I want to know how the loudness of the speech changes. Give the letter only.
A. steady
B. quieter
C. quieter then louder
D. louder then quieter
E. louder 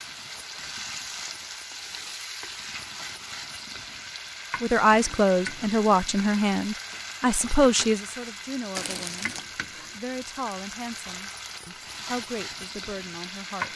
B.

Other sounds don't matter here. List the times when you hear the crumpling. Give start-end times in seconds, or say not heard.
8.7-9.4.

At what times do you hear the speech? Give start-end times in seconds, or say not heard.
4.6-13.7.